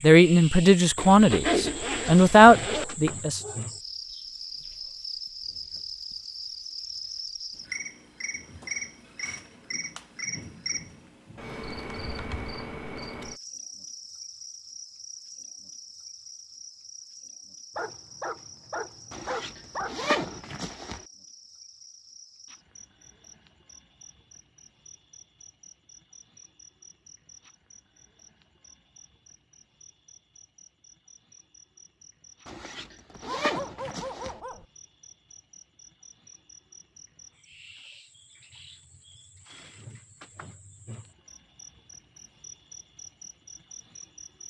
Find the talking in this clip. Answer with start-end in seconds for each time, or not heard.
0.0-3.4.